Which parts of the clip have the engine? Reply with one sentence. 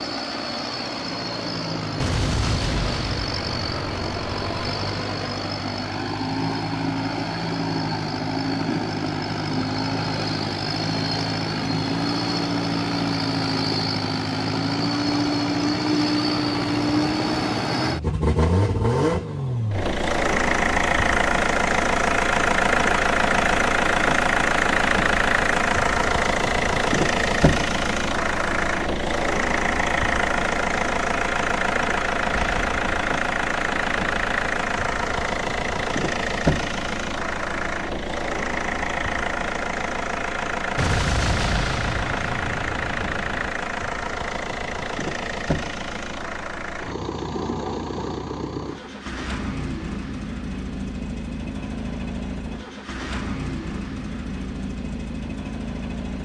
You can hear the engine from 0.0 to 56.2 s.